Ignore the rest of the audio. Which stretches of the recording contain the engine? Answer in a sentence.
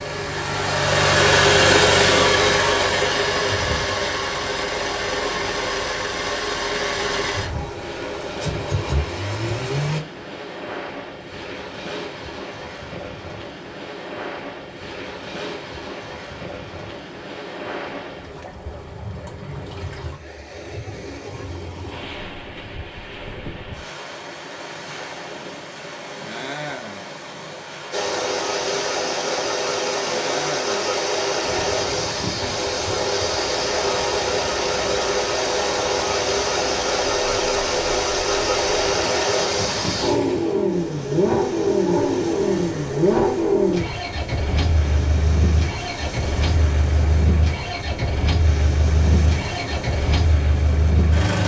You can hear the engine from 0.0 to 10.0 s and from 27.9 to 51.4 s.